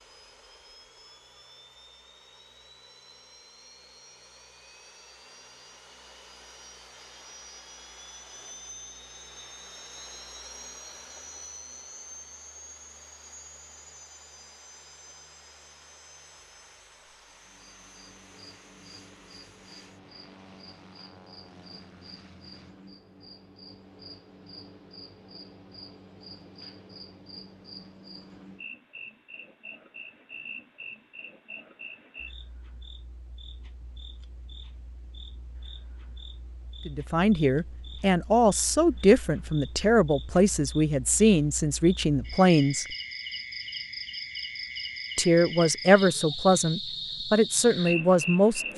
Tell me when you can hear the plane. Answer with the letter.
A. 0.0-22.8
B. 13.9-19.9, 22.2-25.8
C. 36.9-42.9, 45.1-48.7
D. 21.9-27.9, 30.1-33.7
A.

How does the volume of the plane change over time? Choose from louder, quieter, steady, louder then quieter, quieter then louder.
louder then quieter.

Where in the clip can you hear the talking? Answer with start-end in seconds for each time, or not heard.
36.9-42.9, 45.1-48.7.